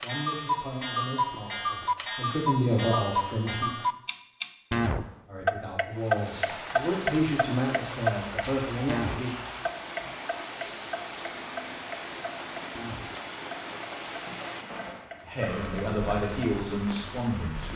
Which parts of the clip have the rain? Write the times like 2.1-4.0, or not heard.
5.9-17.7.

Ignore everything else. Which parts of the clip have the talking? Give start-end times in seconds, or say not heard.
0.0-3.7, 5.2-9.3, 15.2-17.7.